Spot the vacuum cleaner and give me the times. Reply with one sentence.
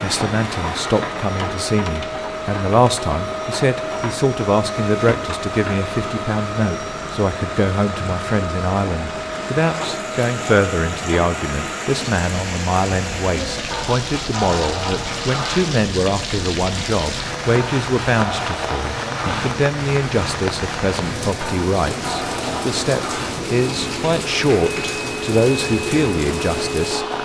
You can hear the vacuum cleaner from 0.0 to 27.2 s.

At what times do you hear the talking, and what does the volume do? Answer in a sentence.
The talking can be heard from 0.0 to 27.2 s, at a steady volume.